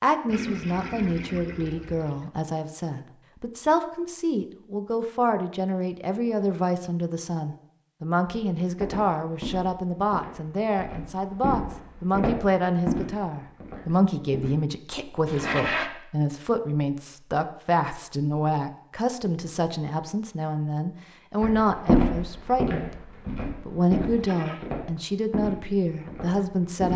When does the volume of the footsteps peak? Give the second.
22 s.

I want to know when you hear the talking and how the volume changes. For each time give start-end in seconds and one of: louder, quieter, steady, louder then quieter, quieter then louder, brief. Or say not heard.
0.0-26.9 steady.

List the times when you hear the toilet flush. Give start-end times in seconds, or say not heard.
0.2-2.2, 15.2-15.9, 23.9-24.7.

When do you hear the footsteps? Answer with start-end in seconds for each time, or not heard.
8.2-14.6, 21.4-26.9.